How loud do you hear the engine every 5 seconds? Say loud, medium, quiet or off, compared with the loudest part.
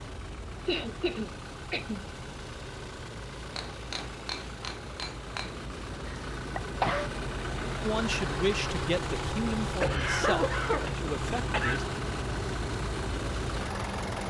medium, loud, loud.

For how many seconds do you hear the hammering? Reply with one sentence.
You can hear the hammering for 2 seconds altogether.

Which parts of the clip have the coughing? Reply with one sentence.
The coughing can be heard from 0.7 to 2.0 s, from 6.0 to 7.1 s and from 9.8 to 11.8 s.